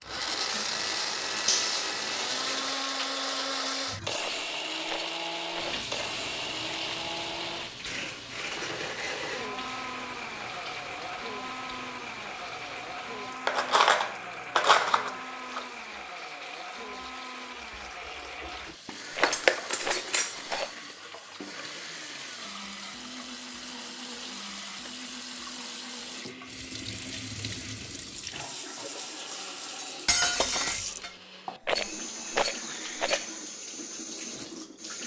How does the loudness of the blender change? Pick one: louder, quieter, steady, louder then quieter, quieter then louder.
quieter.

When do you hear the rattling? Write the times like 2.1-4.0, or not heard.
4.2-5.8, 19.1-20.8, 31.6-33.2.